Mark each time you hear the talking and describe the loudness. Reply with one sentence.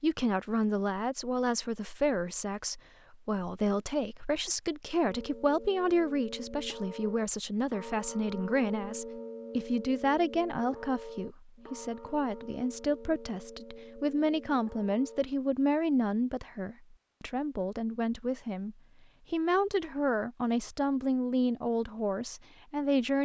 The talking can be heard from 0.0 to 23.2 s, at a steady volume.